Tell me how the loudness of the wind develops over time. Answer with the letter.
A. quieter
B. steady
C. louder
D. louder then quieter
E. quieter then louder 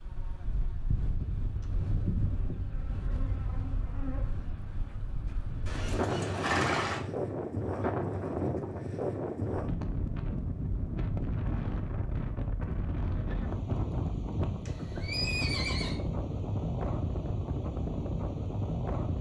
C.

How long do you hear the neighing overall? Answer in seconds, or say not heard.
3 s.